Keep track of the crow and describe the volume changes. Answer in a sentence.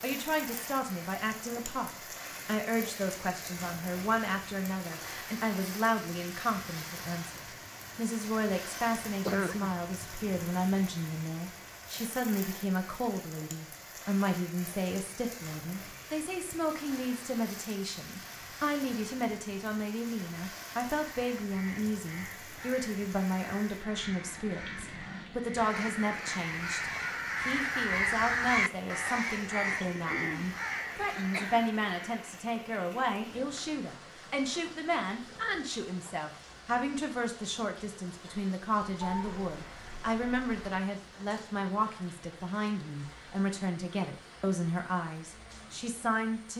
The volume of the crow goes up, then down.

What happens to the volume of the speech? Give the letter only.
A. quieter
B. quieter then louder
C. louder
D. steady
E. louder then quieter
D.